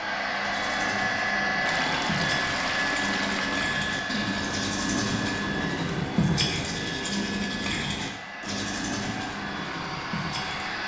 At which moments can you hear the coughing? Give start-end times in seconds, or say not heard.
not heard.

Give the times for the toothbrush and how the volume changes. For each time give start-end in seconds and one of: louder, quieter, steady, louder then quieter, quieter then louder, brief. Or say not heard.
0.3-10.8 louder then quieter.